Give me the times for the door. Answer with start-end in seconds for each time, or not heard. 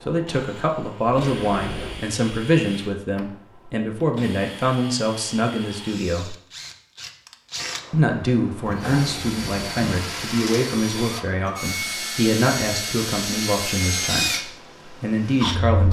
1.2-2.0, 8.7-9.9.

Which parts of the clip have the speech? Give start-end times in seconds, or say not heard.
0.0-6.3, 7.9-15.8.